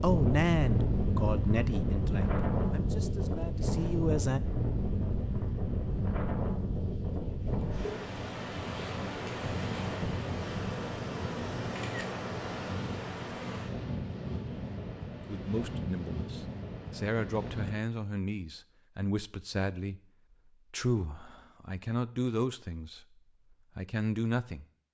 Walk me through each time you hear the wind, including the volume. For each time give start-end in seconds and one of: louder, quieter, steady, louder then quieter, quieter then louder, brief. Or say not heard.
0.0-17.8 quieter.